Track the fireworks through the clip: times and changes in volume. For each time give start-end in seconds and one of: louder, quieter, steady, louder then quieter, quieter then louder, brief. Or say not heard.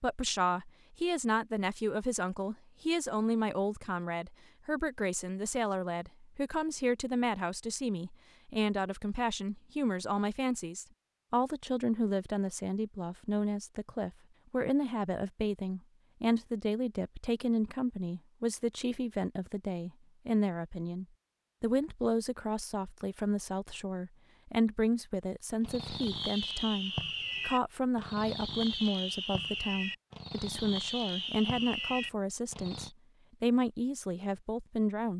25.6-32.9 steady.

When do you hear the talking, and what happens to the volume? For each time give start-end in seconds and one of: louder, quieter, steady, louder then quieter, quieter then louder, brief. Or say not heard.
0.0-35.1 steady.